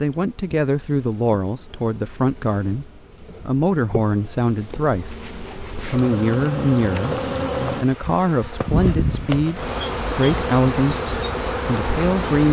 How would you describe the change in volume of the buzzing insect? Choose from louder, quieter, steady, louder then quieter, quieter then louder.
louder.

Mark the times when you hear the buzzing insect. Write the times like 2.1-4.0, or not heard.
0.0-12.4.